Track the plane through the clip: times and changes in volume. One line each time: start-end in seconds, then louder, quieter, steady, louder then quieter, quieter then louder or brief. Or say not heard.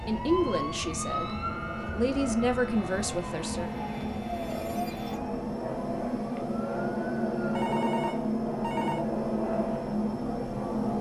0.0-10.9 louder.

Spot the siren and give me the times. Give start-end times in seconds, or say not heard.
0.0-7.7.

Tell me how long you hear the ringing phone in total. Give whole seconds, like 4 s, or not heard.
2 s.